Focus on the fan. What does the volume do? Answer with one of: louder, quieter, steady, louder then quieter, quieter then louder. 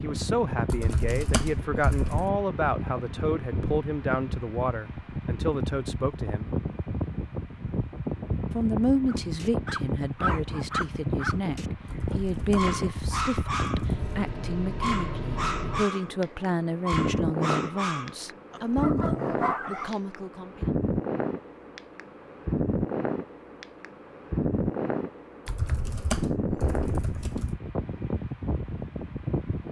steady.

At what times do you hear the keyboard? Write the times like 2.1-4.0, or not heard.
0.7-2.3, 11.8-14.3, 25.4-27.6.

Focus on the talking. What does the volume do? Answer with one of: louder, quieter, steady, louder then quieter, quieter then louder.
steady.